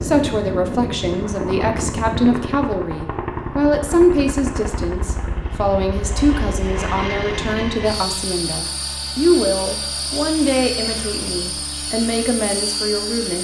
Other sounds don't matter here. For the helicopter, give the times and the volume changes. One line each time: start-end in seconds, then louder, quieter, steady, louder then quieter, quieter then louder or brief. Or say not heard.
0.0-13.3 steady.